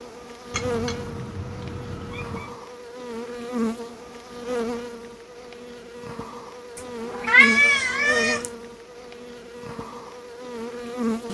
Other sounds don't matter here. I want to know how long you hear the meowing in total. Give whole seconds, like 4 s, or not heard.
4 s.